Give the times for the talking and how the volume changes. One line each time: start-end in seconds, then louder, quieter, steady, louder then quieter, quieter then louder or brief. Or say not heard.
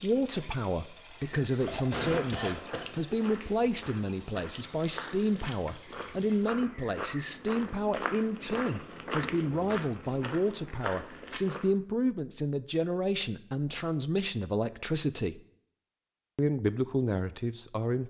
0.0-15.4 steady
16.4-18.0 brief.